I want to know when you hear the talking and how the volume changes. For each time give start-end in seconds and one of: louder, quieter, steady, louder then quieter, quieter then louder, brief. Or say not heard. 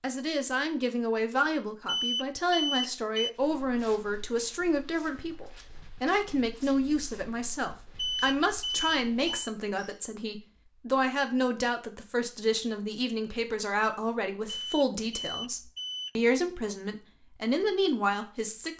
0.0-18.7 steady.